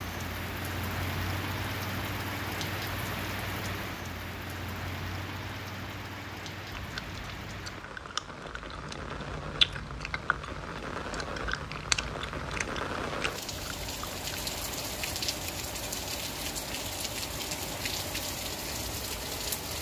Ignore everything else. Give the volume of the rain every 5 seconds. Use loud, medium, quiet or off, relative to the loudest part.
loud, medium, loud, loud.